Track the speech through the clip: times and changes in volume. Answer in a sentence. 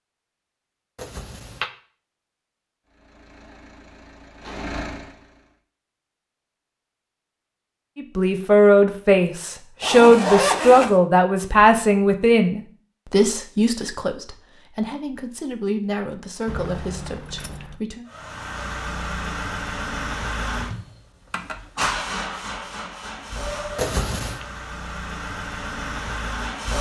The speech can be heard from 8.0 to 18.1 s, getting quieter.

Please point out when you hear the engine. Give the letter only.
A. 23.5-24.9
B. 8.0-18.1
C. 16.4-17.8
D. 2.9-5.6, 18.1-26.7
D.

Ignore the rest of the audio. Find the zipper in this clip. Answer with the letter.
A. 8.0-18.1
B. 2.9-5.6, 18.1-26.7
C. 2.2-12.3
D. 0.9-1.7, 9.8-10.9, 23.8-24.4
D.